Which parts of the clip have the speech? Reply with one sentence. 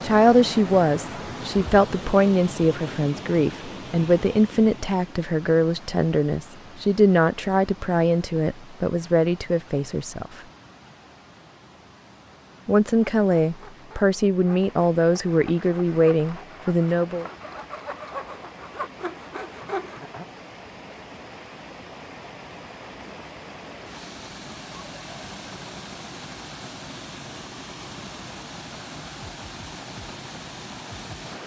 You can hear the speech from 0.0 to 10.4 s and from 12.7 to 17.3 s.